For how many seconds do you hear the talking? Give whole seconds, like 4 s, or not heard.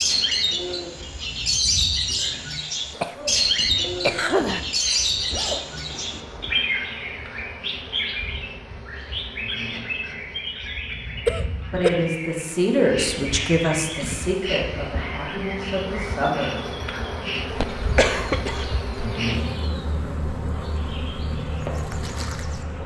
5 s.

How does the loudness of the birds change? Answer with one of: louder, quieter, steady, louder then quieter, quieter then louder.
quieter.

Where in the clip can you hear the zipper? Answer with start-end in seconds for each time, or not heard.
5.3-6.6.